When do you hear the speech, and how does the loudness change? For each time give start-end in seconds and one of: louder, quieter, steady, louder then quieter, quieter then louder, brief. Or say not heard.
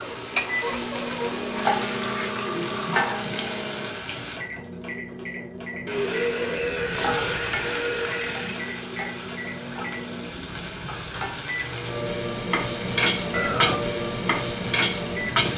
not heard.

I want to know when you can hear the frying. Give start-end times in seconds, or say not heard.
0.0-4.4, 6.9-15.5.